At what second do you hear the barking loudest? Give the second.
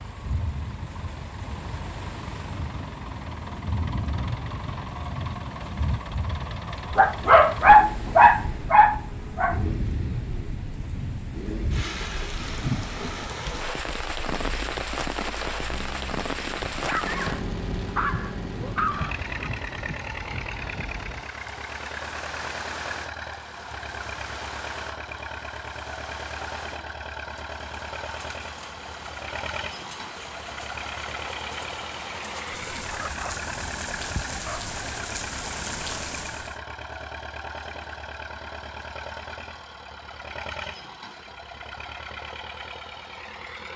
8 s.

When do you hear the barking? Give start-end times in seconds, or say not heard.
6.9-9.6, 16.6-19.5, 32.9-34.8.